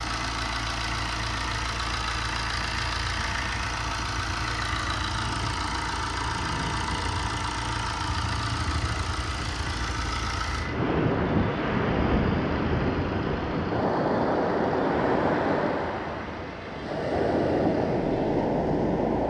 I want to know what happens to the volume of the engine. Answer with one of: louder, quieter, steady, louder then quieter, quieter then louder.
quieter.